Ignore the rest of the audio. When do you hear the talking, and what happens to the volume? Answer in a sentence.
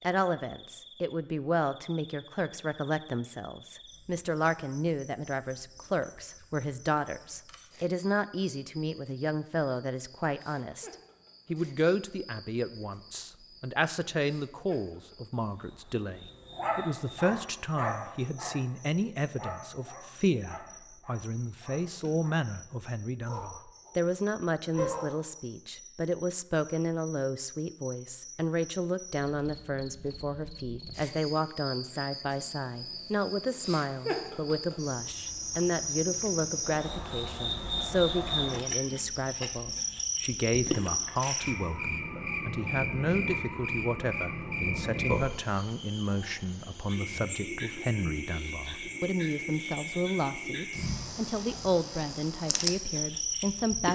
You can hear the talking from 0.0 to 53.8 s, at a steady volume.